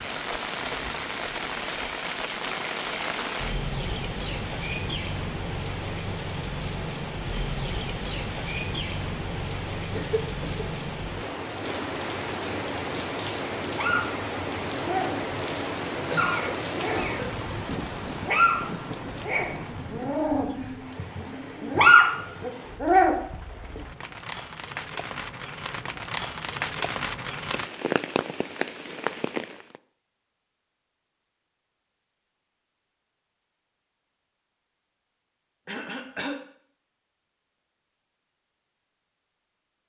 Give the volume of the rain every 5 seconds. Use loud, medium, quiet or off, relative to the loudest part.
loud, loud, loud, loud, medium, loud, off, off.